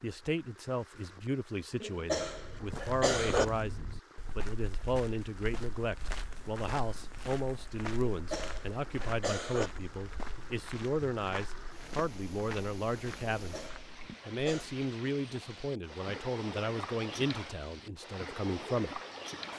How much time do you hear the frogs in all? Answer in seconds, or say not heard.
not heard.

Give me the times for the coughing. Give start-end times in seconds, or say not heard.
1.8-3.5, 8.1-9.7, 13.3-14.7.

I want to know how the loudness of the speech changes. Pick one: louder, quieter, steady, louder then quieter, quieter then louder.
steady.